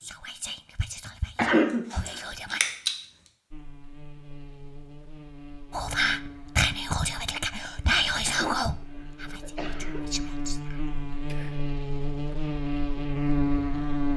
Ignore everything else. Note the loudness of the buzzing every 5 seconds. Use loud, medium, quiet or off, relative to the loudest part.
quiet, quiet, loud.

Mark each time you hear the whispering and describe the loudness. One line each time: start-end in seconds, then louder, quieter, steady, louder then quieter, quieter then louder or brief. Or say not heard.
0.0-2.6 brief
5.7-11.6 quieter.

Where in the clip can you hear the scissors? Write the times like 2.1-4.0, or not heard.
1.9-3.0.